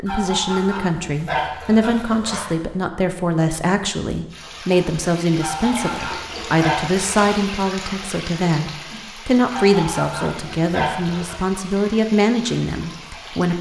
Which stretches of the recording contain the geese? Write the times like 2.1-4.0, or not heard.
0.1-2.5, 5.4-7.3, 9.5-11.3.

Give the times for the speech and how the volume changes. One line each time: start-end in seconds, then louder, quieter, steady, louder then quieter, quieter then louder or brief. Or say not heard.
0.0-13.5 steady.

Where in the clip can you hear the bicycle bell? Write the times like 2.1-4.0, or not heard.
not heard.